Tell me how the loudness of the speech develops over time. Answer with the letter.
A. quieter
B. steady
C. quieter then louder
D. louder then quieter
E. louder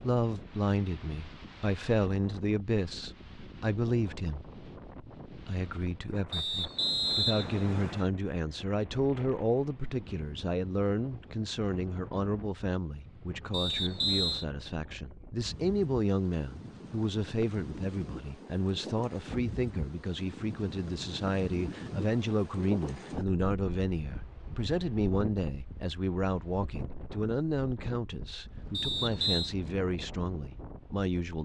B.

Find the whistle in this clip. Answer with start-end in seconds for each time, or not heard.
6.3-8.1, 13.5-14.4, 28.7-29.6.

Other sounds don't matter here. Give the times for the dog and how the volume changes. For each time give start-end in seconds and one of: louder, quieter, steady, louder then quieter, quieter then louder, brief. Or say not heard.
not heard.